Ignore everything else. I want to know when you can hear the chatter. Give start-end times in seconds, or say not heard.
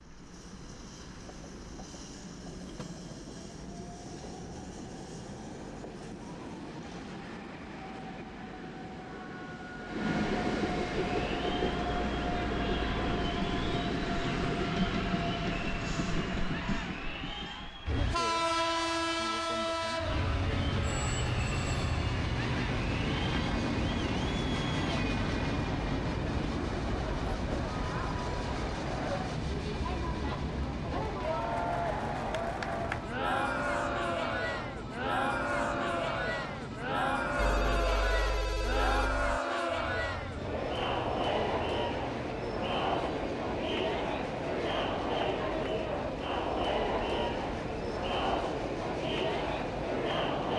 11.1-50.5.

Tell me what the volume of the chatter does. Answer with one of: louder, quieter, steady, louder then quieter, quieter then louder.
louder.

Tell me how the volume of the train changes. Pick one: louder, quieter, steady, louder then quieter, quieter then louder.
louder then quieter.